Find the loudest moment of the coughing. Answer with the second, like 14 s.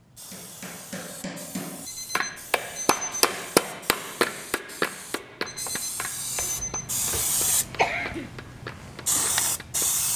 8 s.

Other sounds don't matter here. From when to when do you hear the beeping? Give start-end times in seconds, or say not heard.
1.9-3.2, 5.5-6.9.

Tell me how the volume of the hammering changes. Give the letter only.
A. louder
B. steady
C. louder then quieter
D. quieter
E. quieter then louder
C.